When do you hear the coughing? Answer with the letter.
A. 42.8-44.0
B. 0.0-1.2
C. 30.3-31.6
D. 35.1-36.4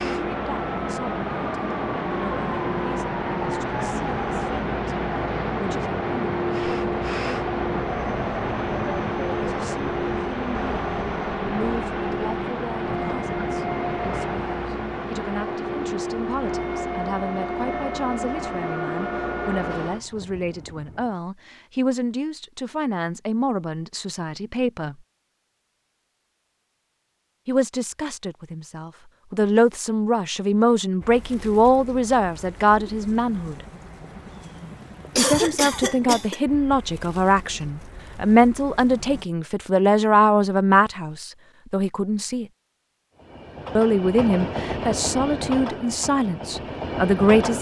D.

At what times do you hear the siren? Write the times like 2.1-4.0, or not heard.
not heard.